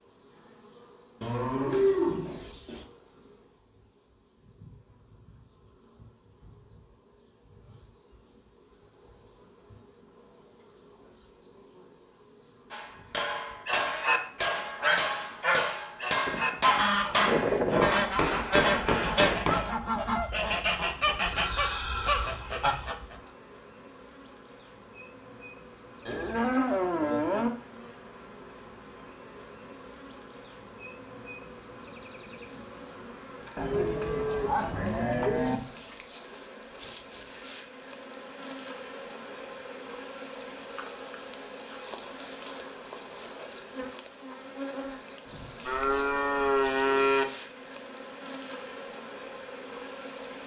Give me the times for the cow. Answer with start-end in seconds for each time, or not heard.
1.2-2.9, 16.2-17.9, 26.1-27.5, 33.5-35.6, 45.6-47.2.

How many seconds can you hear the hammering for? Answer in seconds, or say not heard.
7 s.